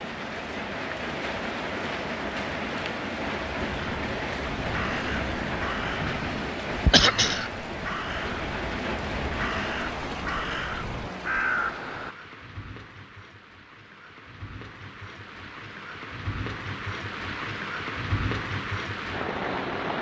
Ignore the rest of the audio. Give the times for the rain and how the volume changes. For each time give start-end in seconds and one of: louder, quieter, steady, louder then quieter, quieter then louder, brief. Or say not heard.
0.0-19.9 quieter then louder.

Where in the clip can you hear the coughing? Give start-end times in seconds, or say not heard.
6.9-7.5.